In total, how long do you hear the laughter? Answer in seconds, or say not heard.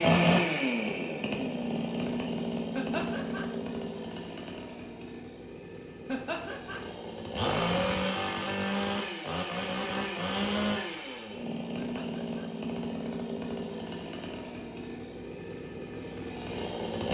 2 s.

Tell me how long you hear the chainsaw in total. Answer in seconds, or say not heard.
17 s.